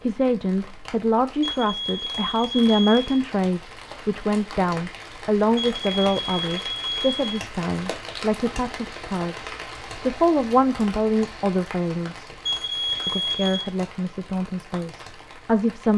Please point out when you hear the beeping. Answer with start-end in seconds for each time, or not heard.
1.4-3.0, 5.5-7.4, 12.4-13.7.